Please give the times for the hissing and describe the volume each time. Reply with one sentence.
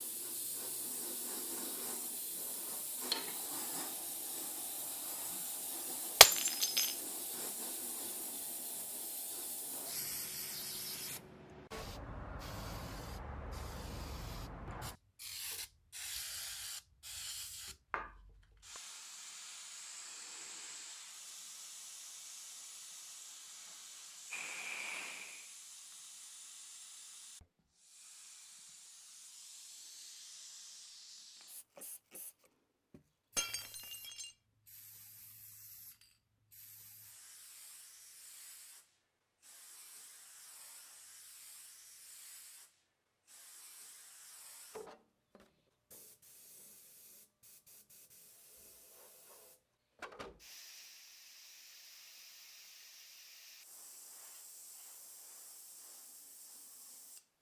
You can hear the hissing from 0.0 to 57.3 s, getting quieter.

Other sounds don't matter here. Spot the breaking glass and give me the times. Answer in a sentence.
The breaking glass can be heard from 6.2 to 6.9 s and from 33.4 to 34.3 s.